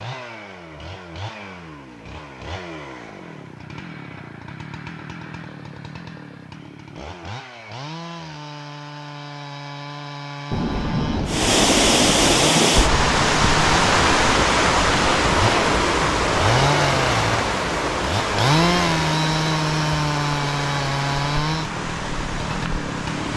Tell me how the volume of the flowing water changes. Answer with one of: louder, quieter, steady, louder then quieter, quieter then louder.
quieter.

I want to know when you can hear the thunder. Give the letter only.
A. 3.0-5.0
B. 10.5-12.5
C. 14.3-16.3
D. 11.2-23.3
B.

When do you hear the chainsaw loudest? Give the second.
19 s.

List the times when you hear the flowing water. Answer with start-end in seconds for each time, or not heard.
11.2-23.3.